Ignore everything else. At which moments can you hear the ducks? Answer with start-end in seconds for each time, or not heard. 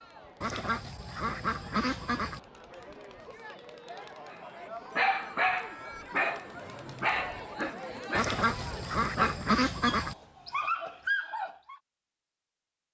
0.4-2.4, 8.2-10.2.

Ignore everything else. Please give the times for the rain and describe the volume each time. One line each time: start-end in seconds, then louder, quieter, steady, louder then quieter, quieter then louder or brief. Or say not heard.
not heard.